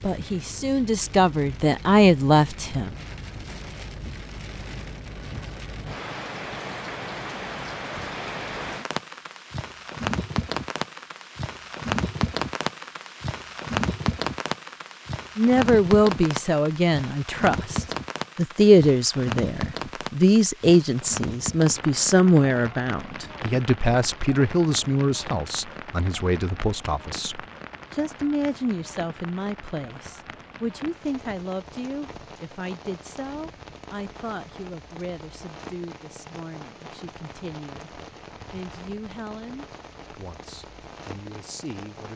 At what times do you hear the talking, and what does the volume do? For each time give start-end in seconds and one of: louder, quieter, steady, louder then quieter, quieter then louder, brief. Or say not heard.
0.0-3.0 brief
15.3-42.1 quieter.